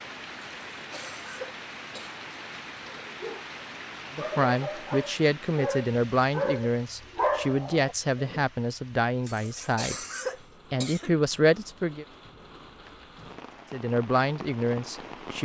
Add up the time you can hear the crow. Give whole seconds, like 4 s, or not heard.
not heard.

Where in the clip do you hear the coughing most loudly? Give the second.
10 s.